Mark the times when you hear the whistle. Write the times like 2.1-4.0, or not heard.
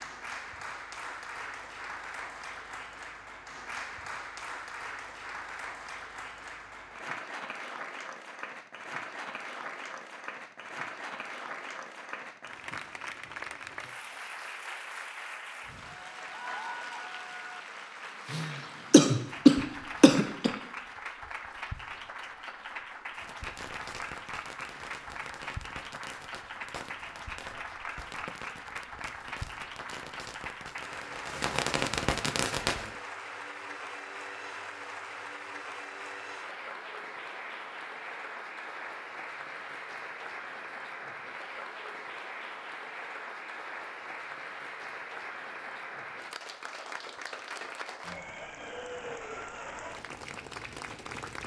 not heard.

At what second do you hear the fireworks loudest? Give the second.
32 s.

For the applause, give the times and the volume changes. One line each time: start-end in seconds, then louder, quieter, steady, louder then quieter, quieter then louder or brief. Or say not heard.
0.0-51.4 steady.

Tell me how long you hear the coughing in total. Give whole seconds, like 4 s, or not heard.
2 s.